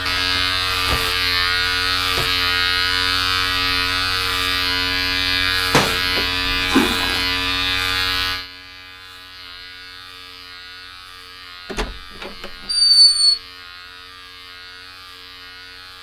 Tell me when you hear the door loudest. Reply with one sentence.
The loudest moment of the door is at 13 seconds.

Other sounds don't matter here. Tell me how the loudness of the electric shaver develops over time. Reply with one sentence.
The loudness of the electric shaver goes down.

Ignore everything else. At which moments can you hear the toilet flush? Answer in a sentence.
The toilet flush can be heard from 6.5 to 7.2 s.